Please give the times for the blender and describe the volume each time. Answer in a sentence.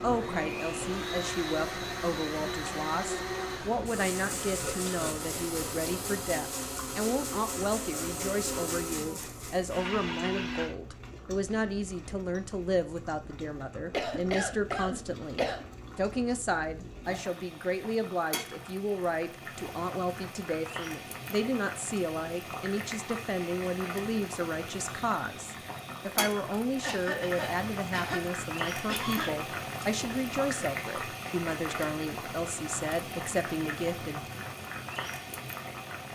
You can hear the blender from 0.0 to 10.8 s, at a steady volume.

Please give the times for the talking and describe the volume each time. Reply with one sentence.
The talking can be heard from 0.0 to 34.4 s, at a steady volume.